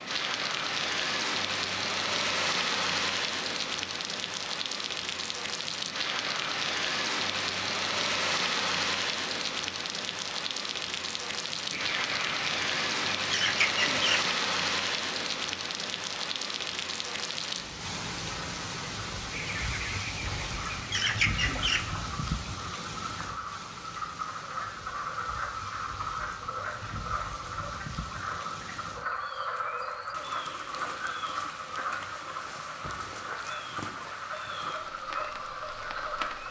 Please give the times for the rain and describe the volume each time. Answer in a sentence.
You can hear the rain from 0.0 to 36.4 s, getting quieter.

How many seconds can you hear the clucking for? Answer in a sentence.
You can hear the clucking for 5 seconds altogether.